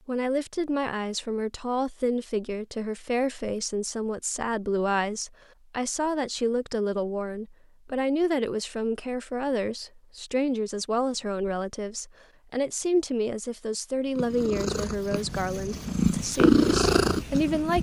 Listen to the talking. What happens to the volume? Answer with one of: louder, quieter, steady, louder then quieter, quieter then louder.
steady.